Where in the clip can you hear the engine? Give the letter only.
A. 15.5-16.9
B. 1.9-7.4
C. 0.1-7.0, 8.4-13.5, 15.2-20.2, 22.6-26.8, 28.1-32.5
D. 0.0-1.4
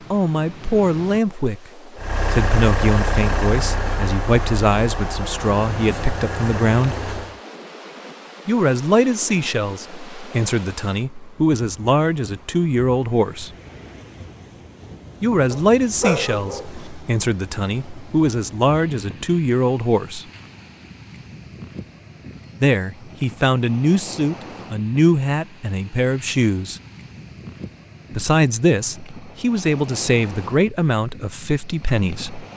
B.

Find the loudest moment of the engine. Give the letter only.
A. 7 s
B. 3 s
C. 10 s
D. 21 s
B.